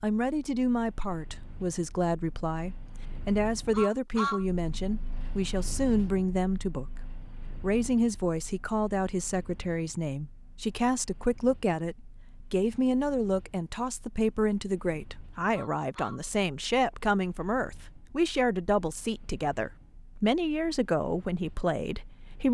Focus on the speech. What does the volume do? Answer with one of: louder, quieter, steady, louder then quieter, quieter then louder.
steady.